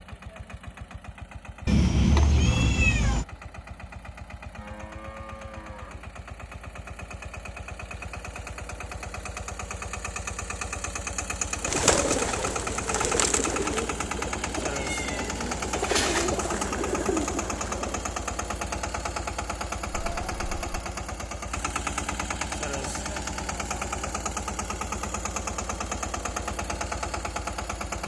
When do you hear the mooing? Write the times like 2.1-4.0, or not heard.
4.5-6.1.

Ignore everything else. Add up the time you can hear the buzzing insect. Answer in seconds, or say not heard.
not heard.